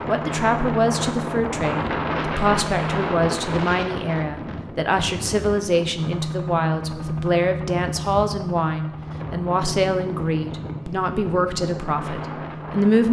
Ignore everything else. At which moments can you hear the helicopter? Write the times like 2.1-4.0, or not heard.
0.0-3.0, 6.0-13.0.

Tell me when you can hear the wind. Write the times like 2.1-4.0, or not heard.
0.0-13.0.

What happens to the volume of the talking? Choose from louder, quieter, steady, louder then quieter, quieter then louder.
steady.